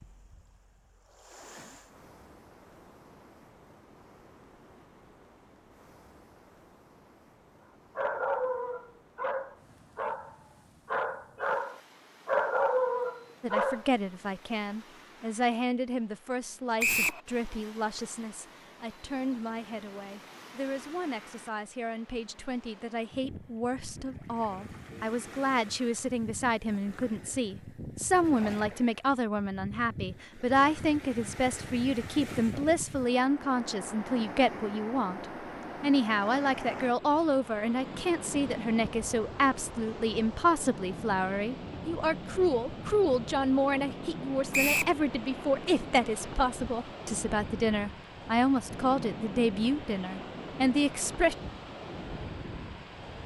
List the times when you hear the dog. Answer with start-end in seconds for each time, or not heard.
8.0-13.8.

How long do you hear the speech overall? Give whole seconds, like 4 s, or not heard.
38 s.